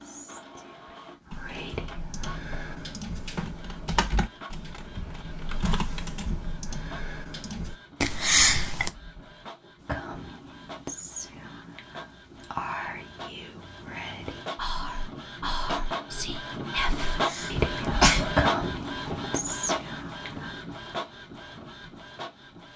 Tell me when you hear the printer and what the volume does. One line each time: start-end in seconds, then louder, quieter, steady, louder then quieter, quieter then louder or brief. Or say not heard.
0.0-22.7 louder.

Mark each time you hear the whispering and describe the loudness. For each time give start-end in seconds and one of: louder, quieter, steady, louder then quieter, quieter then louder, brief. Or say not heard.
0.0-2.8 brief
9.8-20.6 louder.